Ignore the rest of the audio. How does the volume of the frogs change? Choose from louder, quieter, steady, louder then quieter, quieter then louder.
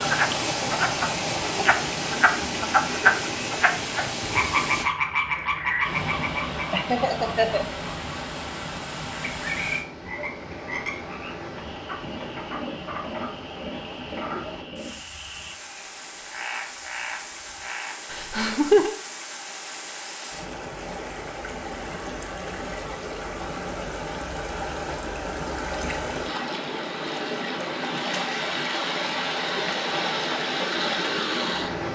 quieter.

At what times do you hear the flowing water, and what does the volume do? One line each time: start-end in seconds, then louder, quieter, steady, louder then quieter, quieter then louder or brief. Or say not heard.
0.0-31.8 quieter then louder.